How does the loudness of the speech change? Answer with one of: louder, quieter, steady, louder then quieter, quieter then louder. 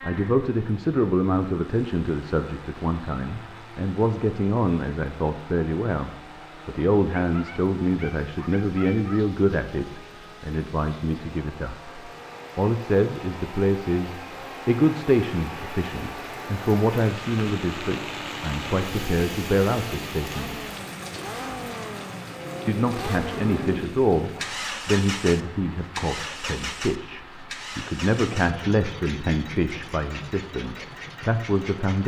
steady.